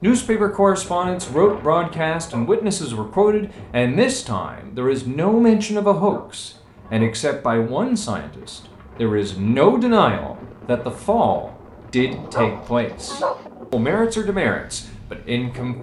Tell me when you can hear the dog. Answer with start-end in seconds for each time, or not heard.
1.4-2.6, 6.0-7.2, 12.2-13.5.